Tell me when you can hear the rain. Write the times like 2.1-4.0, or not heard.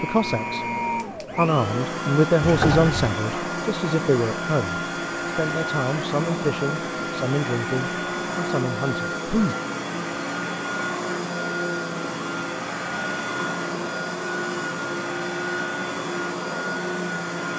not heard.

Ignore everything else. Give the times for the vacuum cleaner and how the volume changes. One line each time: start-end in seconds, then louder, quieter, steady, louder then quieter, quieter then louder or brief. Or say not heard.
0.0-17.5 steady.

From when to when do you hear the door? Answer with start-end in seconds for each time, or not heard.
2.4-3.1.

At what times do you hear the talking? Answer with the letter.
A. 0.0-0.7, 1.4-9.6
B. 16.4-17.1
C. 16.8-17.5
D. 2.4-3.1
A.